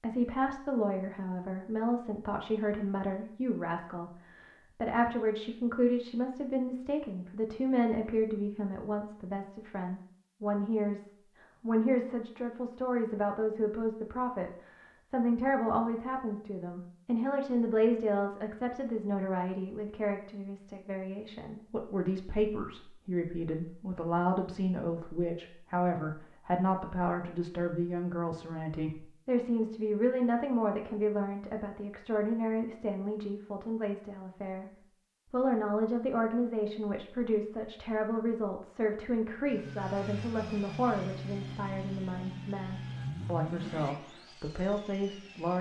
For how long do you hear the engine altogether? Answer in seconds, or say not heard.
6 s.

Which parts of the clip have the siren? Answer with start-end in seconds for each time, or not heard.
not heard.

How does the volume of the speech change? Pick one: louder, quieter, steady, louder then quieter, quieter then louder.
steady.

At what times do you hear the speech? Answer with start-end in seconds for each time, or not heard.
0.0-34.7, 35.3-45.5.